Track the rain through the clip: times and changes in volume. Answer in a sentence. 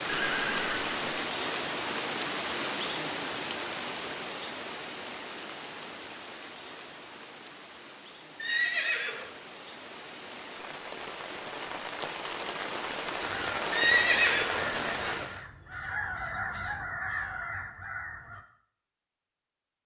You can hear the rain from 0.0 to 15.4 s, getting quieter then louder.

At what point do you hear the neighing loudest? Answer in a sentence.
The volume of the neighing peaks at 14 seconds.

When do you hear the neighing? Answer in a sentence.
You can hear the neighing from 0.1 to 1.2 s, from 8.3 to 9.3 s and from 13.7 to 15.2 s.